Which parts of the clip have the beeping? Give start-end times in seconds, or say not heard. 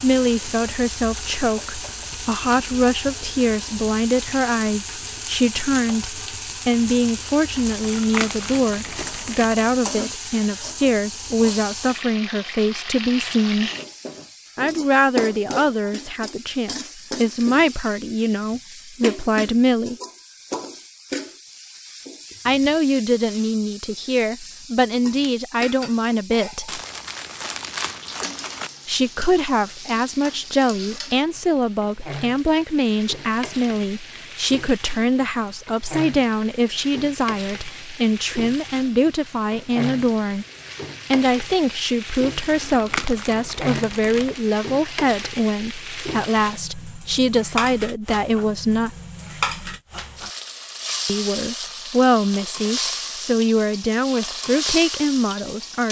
not heard.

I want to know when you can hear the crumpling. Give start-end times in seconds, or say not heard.
7.7-9.8, 26.6-28.7, 42.4-44.4.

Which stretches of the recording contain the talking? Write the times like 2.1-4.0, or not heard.
0.0-13.7, 14.6-19.9, 22.4-26.8, 28.9-40.5, 41.1-48.9, 51.0-55.8.